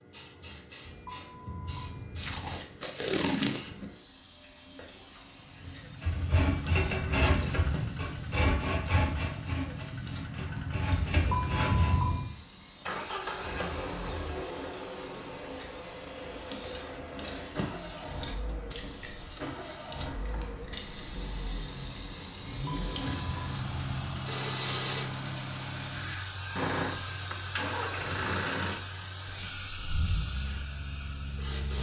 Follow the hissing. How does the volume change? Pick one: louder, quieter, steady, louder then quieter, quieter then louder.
louder.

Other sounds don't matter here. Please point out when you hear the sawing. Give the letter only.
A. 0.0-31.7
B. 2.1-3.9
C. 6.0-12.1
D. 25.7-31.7
C.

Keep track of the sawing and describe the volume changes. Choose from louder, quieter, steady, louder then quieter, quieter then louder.
quieter then louder.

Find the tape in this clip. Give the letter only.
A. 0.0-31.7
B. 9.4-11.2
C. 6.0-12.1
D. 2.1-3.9
D.